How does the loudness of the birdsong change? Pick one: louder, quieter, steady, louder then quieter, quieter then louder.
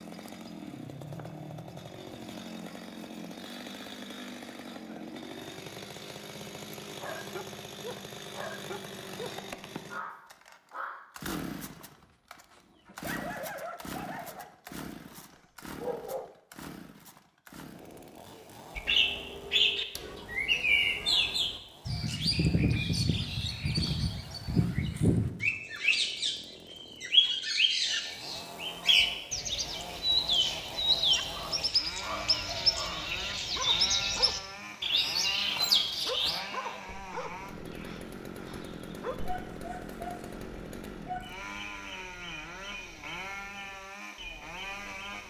quieter.